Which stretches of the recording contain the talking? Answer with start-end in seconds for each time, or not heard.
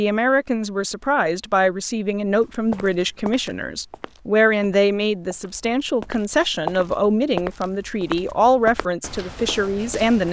0.0-10.2.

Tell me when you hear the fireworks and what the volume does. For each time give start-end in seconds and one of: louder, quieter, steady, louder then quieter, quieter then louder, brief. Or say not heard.
not heard.